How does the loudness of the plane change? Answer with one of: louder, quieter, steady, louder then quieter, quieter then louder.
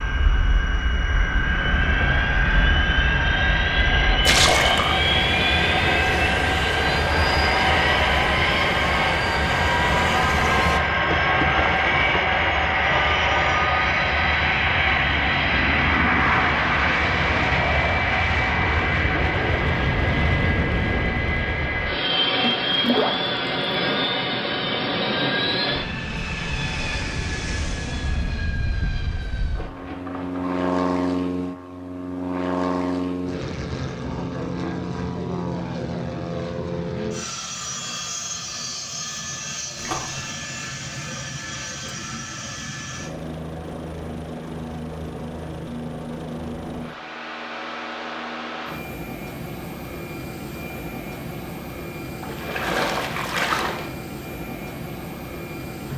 quieter.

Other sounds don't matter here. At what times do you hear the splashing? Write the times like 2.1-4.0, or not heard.
4.2-5.0, 11.1-12.2, 22.4-23.5, 29.5-30.7, 39.8-40.2, 52.2-53.9.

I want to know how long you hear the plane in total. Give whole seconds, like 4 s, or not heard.
56 s.